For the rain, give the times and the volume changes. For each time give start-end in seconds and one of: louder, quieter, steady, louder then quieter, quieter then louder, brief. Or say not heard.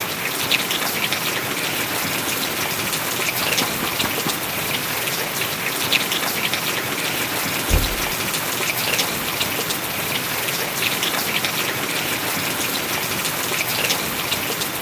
0.0-14.7 steady.